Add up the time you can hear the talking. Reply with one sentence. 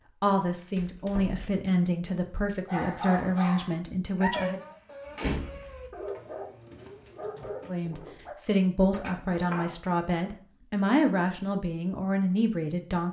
You can hear the talking for 10 seconds altogether.